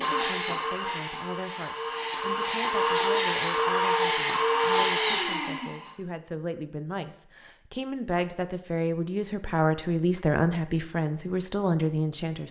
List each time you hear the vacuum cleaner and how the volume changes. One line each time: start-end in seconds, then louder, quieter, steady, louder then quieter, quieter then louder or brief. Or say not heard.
0.0-5.9 louder.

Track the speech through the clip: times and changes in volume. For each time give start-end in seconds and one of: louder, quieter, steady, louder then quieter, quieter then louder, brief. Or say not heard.
0.0-12.4 louder.